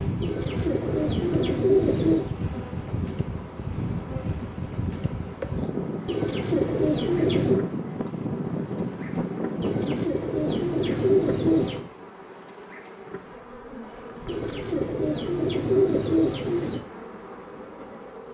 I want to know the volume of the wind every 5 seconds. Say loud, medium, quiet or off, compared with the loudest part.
loud, loud, loud, off.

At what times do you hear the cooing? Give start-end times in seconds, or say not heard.
0.2-2.3, 6.0-7.7, 9.6-11.8, 14.2-16.9.